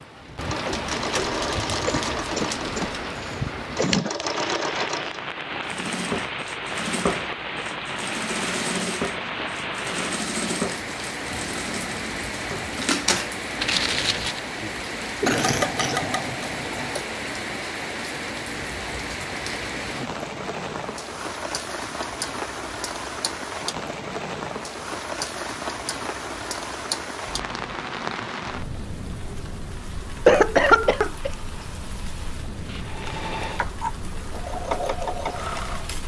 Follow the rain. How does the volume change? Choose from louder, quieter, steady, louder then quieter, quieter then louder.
quieter.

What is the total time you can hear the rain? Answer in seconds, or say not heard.
36 s.